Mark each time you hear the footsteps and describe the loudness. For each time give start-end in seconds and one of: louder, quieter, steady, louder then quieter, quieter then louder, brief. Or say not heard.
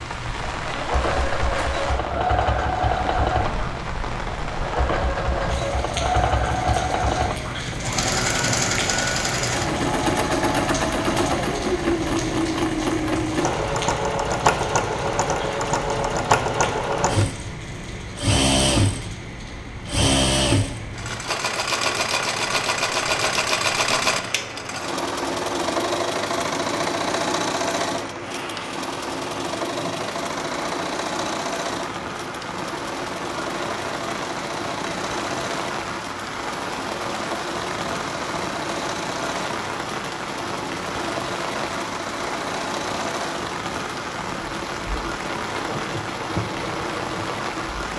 not heard.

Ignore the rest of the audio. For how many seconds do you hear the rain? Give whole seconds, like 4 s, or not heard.
48 s.